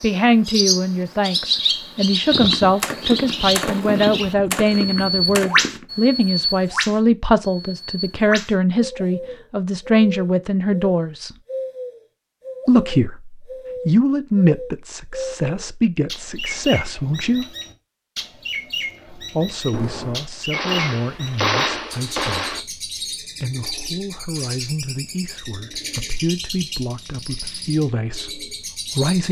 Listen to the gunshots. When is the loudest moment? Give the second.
22 s.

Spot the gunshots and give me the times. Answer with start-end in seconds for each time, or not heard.
2.3-5.8, 19.7-22.6.